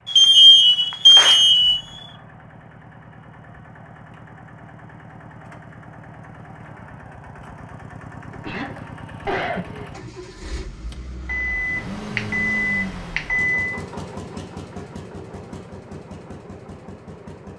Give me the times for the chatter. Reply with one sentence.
The chatter can't be heard in this clip.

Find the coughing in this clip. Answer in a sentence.
The coughing can be heard from 8.3 to 9.9 s.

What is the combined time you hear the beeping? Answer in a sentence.
The beeping can be heard for 4 seconds in total.